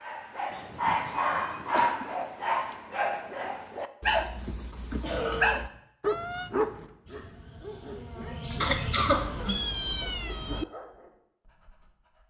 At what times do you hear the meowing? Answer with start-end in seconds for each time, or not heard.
0.5-1.9, 5.2-6.5, 9.1-10.7.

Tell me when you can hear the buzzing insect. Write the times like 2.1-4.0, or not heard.
7.0-9.7.